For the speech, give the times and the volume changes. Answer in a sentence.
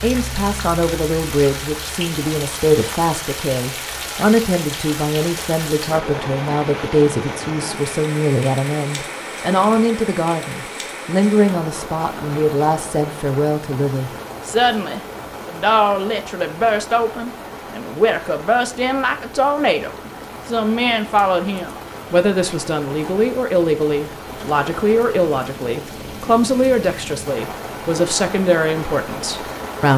You can hear the speech from 0.0 to 29.9 s, at a steady volume.